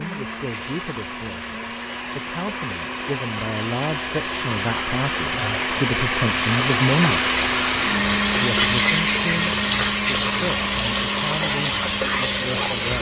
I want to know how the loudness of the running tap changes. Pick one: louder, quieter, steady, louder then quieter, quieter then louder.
louder.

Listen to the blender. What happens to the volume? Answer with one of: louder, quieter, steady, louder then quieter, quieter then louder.
louder then quieter.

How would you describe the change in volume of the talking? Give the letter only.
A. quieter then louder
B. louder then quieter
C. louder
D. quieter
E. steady
B.